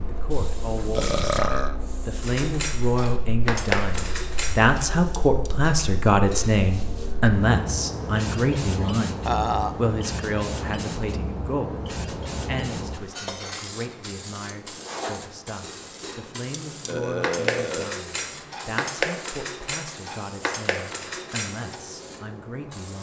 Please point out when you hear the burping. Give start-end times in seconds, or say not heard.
0.9-1.8, 9.2-9.8, 16.9-18.1.